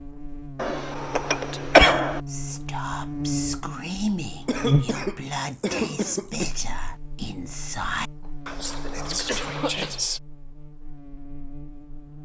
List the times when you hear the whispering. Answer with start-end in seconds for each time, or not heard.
1.0-10.2.